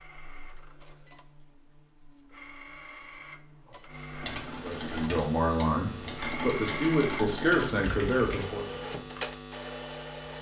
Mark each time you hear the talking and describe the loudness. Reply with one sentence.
The talking can be heard from 4.6 to 8.8 s, at a steady volume.